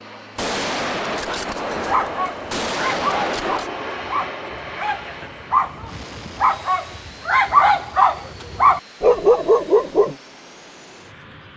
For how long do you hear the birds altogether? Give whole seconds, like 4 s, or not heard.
not heard.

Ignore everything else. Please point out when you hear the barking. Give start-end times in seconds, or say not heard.
1.8-10.2.